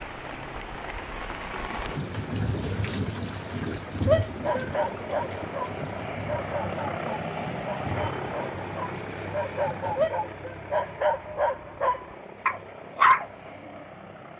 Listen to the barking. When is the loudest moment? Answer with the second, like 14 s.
13 s.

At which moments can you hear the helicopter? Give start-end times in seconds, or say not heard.
0.0-14.3.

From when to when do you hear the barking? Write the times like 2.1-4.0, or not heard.
4.4-13.8.